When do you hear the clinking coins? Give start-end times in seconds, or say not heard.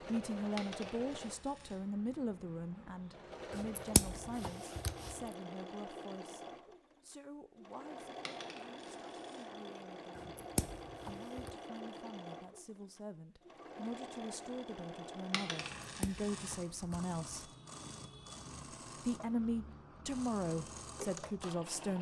0.6-1.8, 8.2-9.4, 15.3-16.6.